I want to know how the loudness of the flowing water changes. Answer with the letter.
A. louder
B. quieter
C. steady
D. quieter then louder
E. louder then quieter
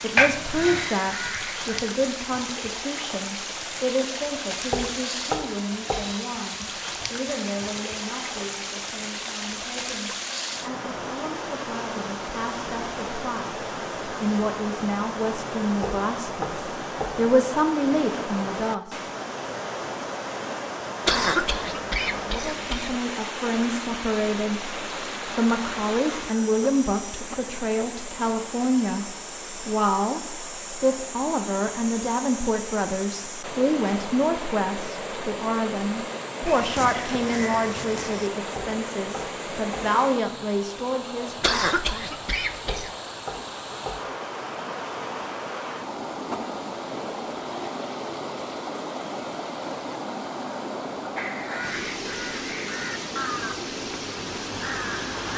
C.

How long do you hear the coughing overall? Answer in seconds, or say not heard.
4 s.